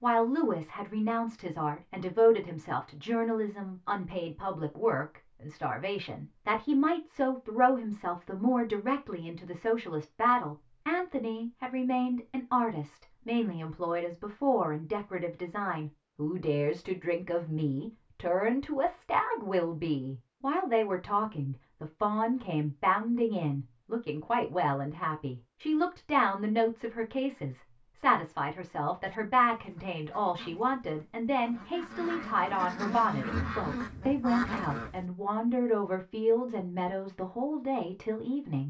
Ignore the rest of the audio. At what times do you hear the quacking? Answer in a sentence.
The quacking can be heard from 29.1 to 35.0 s.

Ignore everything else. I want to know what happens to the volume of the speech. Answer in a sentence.
The volume of the speech stays about the same.